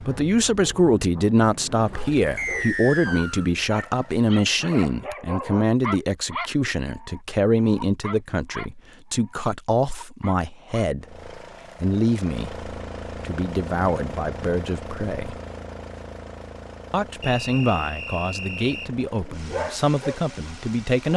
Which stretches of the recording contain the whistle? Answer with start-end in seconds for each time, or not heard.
2.4-3.5, 17.2-18.9.